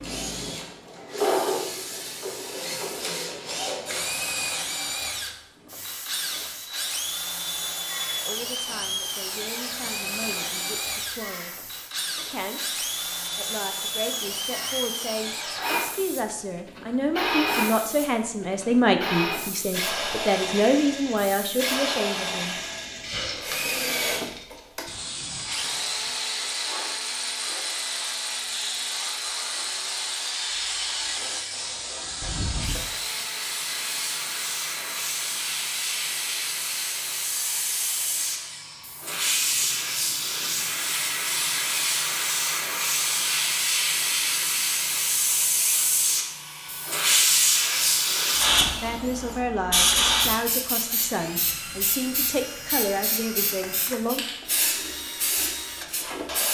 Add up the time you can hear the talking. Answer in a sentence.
You can hear the talking for 20 seconds altogether.